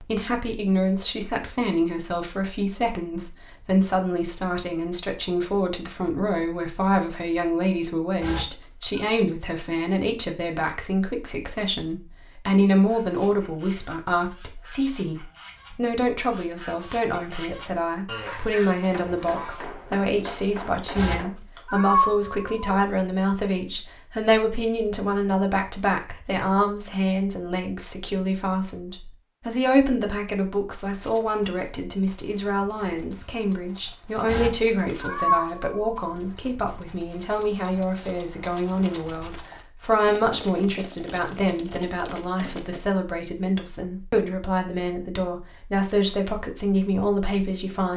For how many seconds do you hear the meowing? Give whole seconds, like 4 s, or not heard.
4 s.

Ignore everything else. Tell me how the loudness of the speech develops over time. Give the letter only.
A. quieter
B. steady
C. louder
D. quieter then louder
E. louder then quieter
B.